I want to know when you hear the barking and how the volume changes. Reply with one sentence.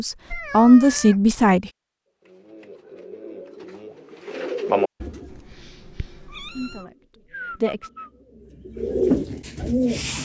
The barking can't be heard in this clip.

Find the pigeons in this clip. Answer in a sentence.
You can hear the pigeons from 2.2 to 5.4 s and from 6.8 to 10.2 s.